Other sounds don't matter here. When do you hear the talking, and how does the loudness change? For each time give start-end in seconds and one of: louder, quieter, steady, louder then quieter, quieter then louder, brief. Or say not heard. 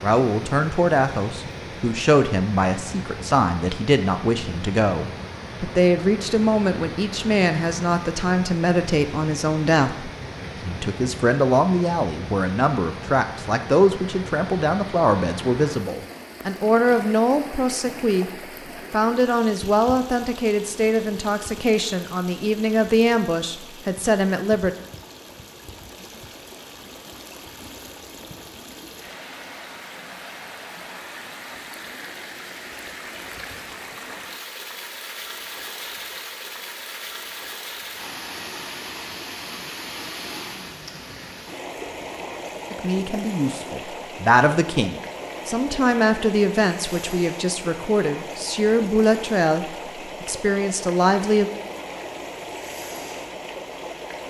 0.0-24.8 steady
42.7-51.5 steady.